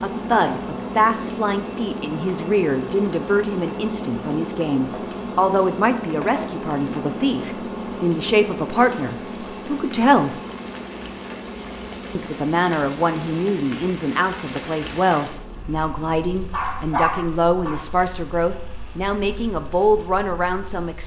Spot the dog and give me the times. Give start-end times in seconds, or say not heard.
16.5-17.8.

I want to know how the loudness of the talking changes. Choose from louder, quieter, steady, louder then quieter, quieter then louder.
steady.